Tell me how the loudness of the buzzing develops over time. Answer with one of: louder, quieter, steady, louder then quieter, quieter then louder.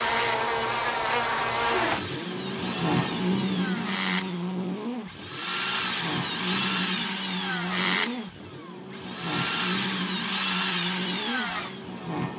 quieter.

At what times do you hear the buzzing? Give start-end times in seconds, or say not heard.
0.0-12.3.